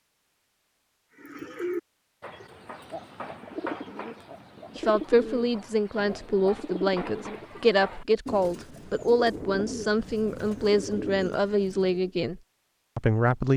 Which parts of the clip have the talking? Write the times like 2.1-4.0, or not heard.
4.8-13.5.